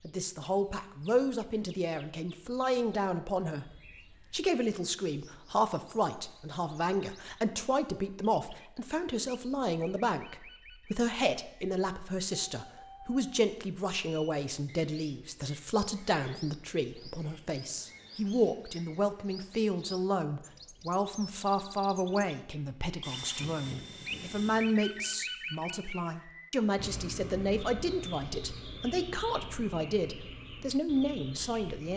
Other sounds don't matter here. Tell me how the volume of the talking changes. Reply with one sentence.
The volume of the talking stays about the same.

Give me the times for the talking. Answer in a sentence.
You can hear the talking from 0.0 to 31.9 s.